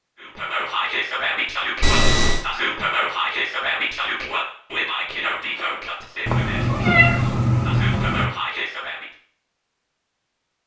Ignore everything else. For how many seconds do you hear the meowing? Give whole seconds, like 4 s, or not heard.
3 s.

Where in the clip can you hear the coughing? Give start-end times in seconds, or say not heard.
not heard.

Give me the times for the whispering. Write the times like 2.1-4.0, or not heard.
0.2-9.1.